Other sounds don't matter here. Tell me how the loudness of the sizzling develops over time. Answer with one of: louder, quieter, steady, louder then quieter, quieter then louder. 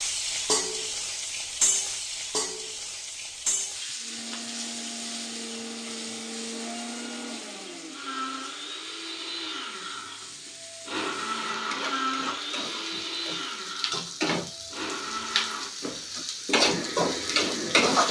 quieter then louder.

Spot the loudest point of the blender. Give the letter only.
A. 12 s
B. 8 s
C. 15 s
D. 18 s
A.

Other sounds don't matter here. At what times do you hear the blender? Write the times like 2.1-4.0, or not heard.
4.0-17.9.